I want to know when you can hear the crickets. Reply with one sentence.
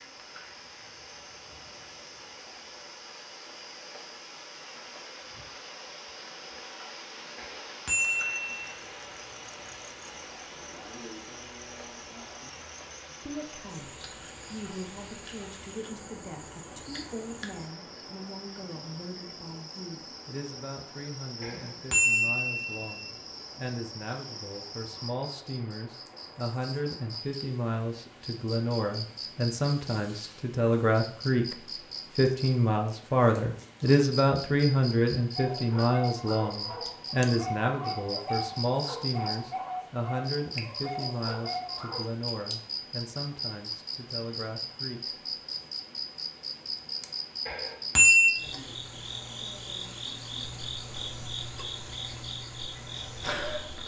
The crickets can be heard from 0.0 to 53.8 s.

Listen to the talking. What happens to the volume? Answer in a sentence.
The volume of the talking goes up, then down.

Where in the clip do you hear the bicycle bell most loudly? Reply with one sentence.
The loudest moment of the bicycle bell is at 48 seconds.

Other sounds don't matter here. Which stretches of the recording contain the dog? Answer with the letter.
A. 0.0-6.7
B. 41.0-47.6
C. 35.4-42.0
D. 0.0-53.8
C.